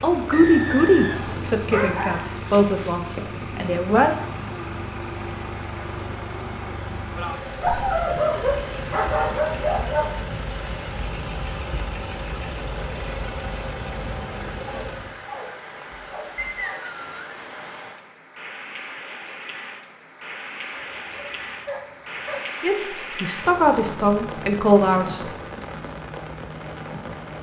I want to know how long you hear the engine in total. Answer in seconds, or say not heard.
15 s.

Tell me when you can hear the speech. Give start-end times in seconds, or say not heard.
0.0-4.2, 22.6-25.2.